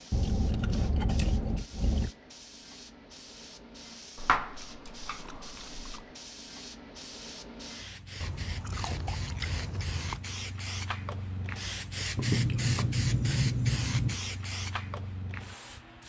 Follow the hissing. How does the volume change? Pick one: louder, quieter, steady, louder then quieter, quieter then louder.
louder.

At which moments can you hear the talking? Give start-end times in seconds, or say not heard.
not heard.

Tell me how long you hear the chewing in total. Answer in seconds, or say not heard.
8 s.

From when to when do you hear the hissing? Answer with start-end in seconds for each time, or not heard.
0.0-16.0.